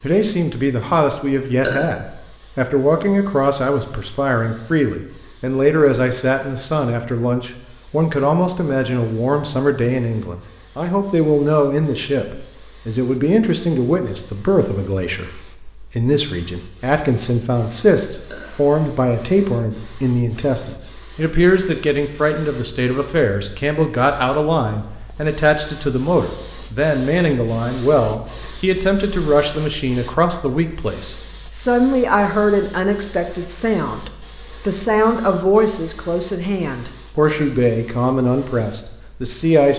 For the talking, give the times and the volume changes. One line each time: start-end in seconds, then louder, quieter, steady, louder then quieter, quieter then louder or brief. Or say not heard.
0.0-39.7 steady.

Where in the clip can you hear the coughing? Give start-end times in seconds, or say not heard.
not heard.